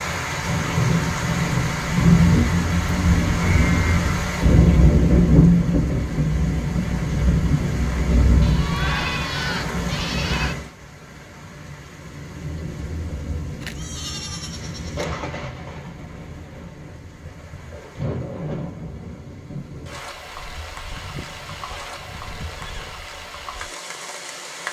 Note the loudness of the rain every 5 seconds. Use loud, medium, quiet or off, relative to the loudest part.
loud, loud, quiet, quiet, quiet.